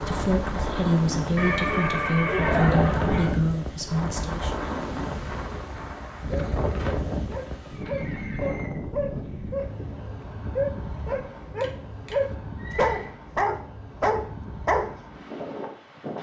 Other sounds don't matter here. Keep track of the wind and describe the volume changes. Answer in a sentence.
The volume of the wind goes down.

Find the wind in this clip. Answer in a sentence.
The wind can be heard from 0.0 to 16.1 s.